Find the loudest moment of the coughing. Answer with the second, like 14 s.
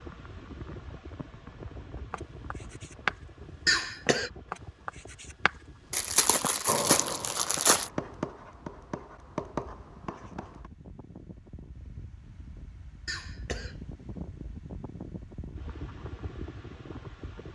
4 s.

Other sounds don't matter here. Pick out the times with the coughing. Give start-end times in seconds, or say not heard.
3.6-4.3, 13.1-13.8.